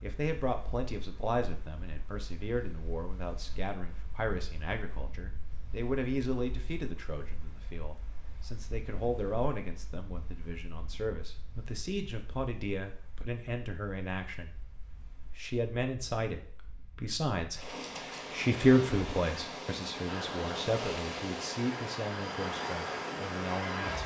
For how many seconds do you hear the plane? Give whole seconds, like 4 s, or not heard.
4 s.